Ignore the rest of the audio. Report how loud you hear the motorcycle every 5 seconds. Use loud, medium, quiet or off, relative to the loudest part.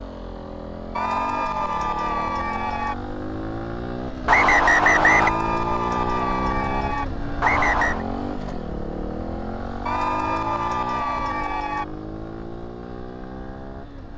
loud, loud, medium.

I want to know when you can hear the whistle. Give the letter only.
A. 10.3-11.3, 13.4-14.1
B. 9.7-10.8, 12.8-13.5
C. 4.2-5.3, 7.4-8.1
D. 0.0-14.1
C.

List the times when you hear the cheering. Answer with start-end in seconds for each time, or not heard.
0.9-3.0, 5.0-7.0, 9.8-11.8.